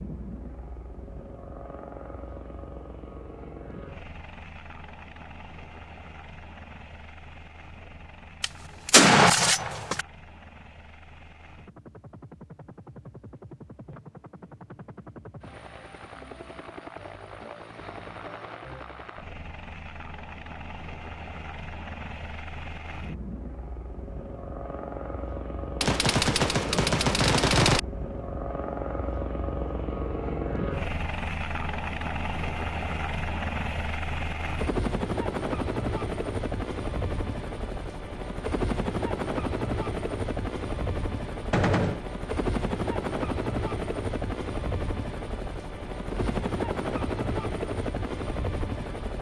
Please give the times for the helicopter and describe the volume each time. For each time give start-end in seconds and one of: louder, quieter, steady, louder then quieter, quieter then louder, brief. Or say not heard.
0.0-49.1 louder.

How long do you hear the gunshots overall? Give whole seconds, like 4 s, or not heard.
4 s.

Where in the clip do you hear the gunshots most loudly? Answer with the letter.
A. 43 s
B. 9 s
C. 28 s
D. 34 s
B.